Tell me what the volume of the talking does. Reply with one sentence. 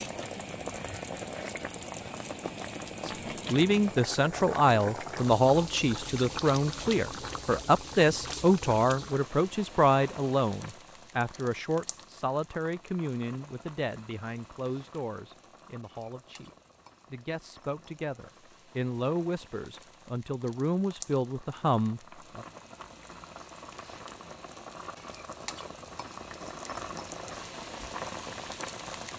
The volume of the talking goes down, then up.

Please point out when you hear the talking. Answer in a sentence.
The talking can be heard from 3.0 to 16.5 s and from 17.1 to 22.4 s.